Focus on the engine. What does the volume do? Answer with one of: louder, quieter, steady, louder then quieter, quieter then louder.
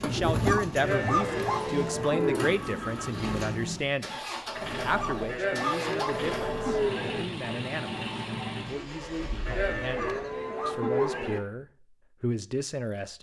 steady.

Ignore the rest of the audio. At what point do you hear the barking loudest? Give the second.
1 s.